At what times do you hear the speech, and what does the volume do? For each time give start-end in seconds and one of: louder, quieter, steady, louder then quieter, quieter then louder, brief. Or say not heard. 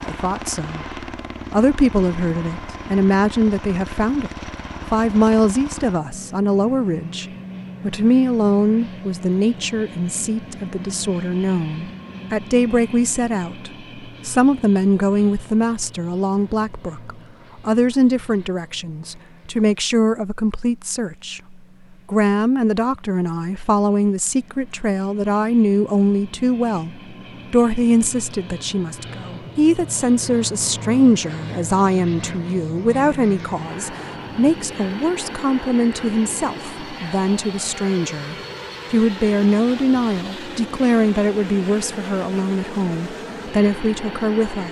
0.0-4.3 louder
4.9-44.6 steady.